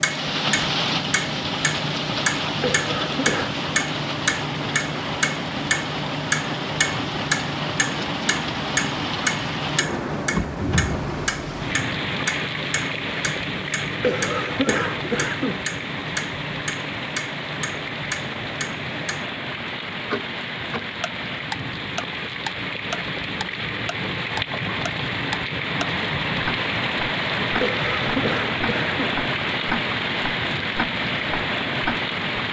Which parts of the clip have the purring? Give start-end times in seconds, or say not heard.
not heard.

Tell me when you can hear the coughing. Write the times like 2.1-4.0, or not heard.
2.6-3.5, 14.0-15.7, 27.6-29.2.